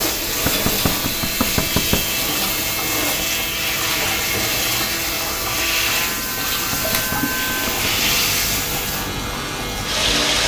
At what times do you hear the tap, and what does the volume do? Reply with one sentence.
You can hear the tap from 0.0 to 10.4 s, at a steady volume.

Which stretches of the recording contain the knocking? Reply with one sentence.
You can hear the knocking from 0.2 to 2.1 s and from 6.7 to 7.9 s.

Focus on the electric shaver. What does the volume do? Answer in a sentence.
The volume of the electric shaver stays about the same.